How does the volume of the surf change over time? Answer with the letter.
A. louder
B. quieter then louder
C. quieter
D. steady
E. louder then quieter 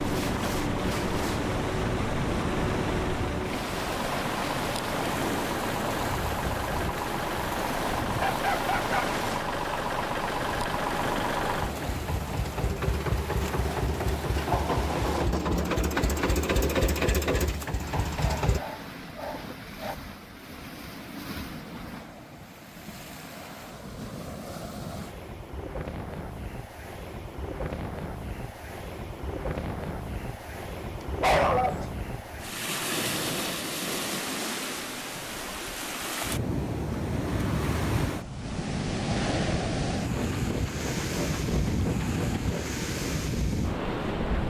B.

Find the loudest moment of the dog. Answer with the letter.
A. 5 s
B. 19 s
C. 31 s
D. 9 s
C.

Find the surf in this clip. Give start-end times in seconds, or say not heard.
0.0-44.4.